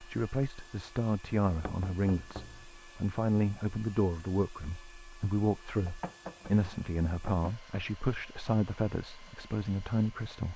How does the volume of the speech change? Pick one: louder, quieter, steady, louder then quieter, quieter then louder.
steady.